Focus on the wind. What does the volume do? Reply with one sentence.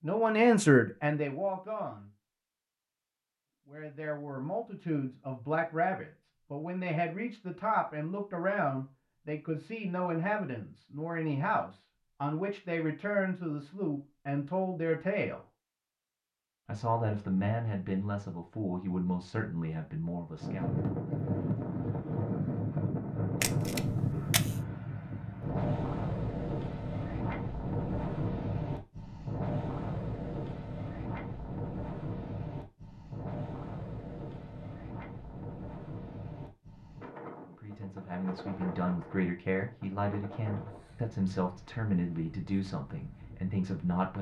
The volume of the wind goes down.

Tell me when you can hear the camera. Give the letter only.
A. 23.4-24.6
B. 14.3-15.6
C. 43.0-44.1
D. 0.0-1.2
A.